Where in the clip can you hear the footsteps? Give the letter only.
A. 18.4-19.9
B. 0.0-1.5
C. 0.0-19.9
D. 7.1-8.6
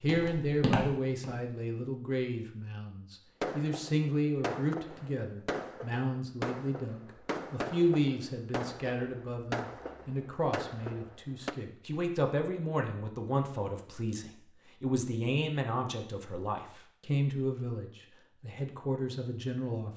B.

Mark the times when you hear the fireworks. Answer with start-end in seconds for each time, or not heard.
3.4-11.6.